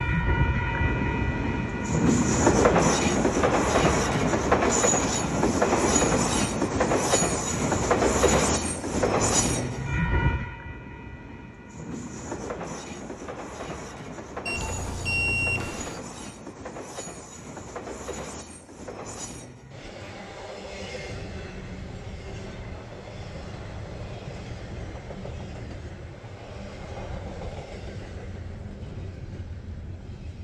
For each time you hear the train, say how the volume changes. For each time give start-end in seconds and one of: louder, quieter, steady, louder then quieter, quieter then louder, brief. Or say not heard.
0.0-30.3 quieter.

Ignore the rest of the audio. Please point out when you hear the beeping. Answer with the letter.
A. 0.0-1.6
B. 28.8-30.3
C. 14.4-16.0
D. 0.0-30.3
C.